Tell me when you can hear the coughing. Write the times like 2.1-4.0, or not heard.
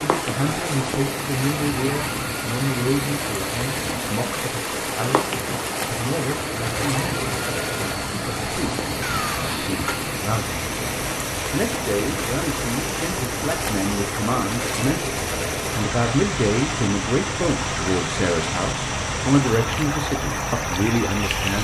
9.0-9.9.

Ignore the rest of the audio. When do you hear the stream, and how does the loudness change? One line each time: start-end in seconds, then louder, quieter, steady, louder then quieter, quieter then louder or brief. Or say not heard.
0.0-21.6 steady.